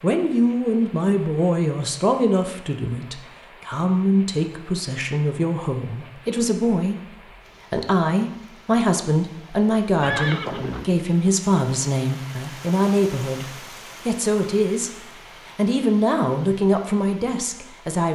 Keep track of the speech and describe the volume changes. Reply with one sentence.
The loudness of the speech stays about the same.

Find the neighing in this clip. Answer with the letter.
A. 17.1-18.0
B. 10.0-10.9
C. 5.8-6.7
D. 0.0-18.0
B.